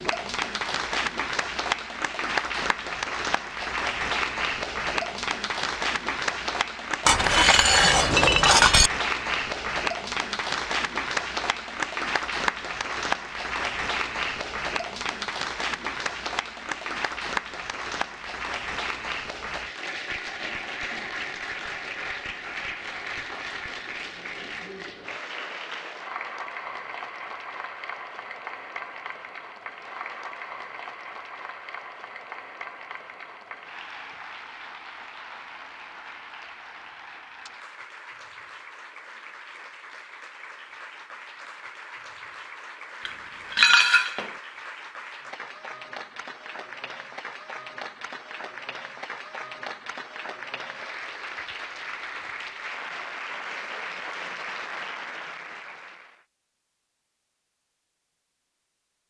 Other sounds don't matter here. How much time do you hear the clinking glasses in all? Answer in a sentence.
You can hear the clinking glasses for 3 seconds altogether.